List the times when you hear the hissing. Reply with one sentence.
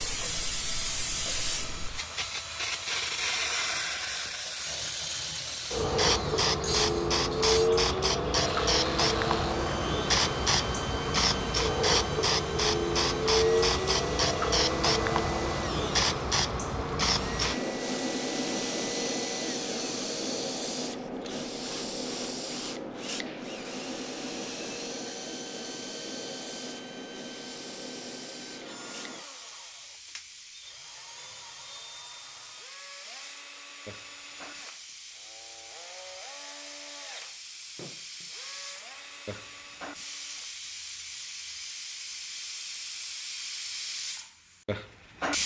You can hear the hissing from 0.0 to 45.4 s.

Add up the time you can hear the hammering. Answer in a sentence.
The hammering can't be heard in this clip.